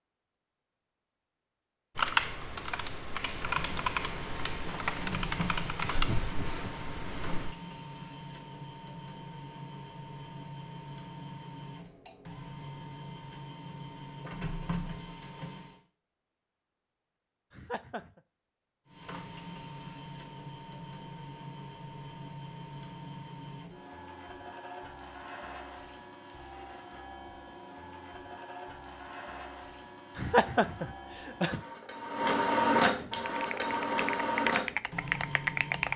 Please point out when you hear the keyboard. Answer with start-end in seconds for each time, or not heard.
1.9-7.5, 33.4-35.9.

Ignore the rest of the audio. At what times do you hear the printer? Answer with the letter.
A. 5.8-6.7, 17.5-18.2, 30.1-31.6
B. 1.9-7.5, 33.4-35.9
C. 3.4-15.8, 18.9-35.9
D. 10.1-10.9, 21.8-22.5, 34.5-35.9
C.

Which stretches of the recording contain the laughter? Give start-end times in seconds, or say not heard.
5.8-6.7, 17.5-18.2, 30.1-31.6.